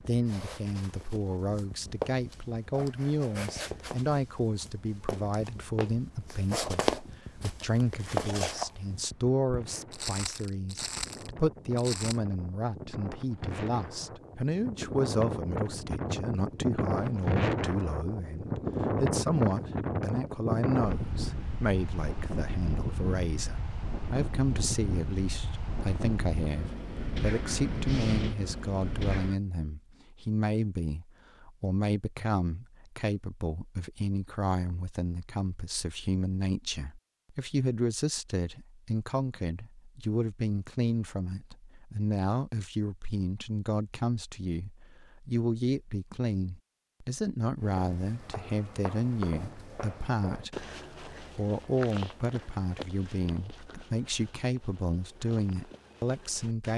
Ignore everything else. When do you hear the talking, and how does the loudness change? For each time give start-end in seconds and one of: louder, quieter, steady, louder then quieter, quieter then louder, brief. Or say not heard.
0.0-56.7 steady.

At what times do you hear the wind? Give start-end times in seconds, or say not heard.
0.0-29.4.